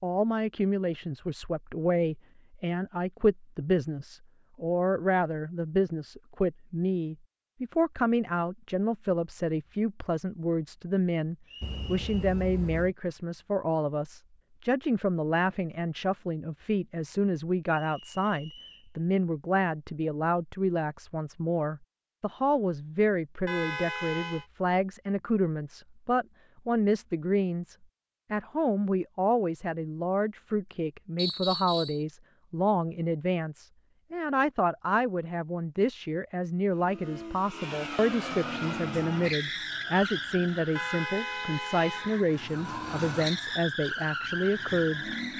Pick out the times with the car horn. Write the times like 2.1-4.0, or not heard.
11.6-12.9, 23.4-24.4, 40.8-42.2.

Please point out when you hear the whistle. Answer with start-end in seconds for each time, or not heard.
11.4-12.1, 17.6-18.9, 31.1-32.0.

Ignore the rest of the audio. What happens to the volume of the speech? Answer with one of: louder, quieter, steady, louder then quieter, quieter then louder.
steady.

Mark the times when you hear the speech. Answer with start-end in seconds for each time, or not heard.
0.0-45.0.